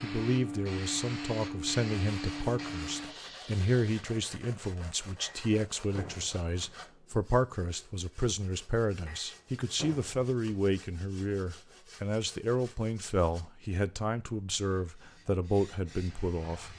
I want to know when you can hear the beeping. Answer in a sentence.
You can't hear the beeping here.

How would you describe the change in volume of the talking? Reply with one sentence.
The loudness of the talking stays about the same.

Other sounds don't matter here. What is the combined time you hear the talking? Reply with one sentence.
The talking can be heard for 17 seconds in total.